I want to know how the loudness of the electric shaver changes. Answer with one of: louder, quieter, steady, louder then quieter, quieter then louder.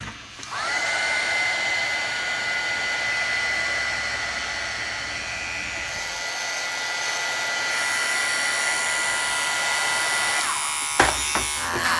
louder.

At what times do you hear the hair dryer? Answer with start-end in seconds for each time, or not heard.
0.0-11.9.